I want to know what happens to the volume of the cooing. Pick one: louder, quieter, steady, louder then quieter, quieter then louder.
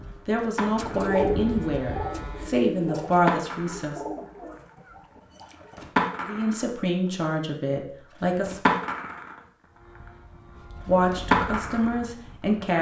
quieter.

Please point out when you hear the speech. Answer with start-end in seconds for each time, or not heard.
0.2-4.0, 6.2-8.8, 10.8-12.7.